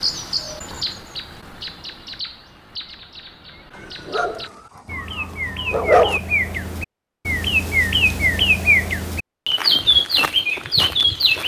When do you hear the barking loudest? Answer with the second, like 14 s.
6 s.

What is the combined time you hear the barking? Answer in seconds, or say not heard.
2 s.